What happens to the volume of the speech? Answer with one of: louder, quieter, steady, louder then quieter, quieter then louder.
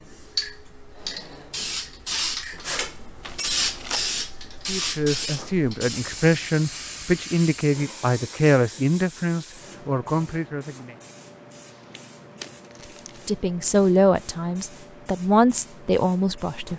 steady.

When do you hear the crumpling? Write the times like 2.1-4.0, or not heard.
3.2-4.1, 11.7-13.3.